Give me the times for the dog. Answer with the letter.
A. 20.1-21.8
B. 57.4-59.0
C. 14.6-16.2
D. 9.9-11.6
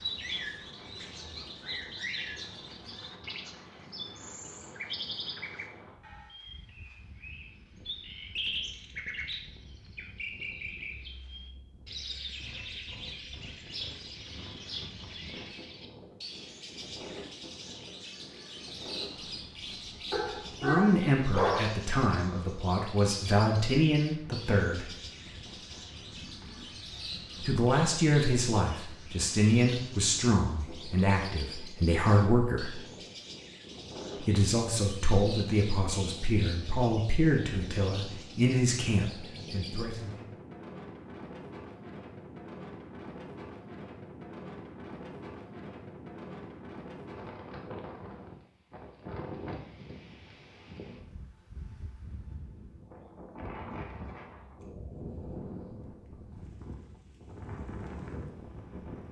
A.